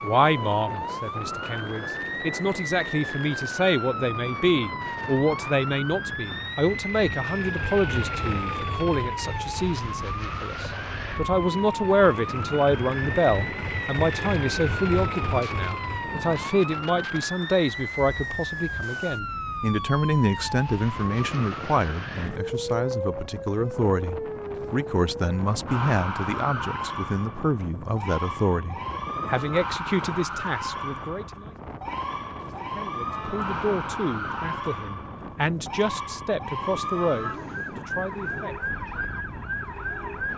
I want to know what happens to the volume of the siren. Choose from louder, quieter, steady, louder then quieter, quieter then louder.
steady.